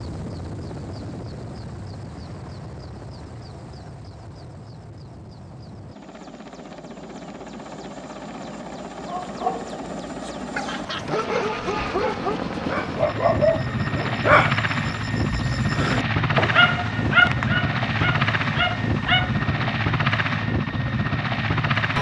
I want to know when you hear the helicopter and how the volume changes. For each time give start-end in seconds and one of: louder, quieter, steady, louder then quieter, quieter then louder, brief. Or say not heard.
0.0-21.9 louder.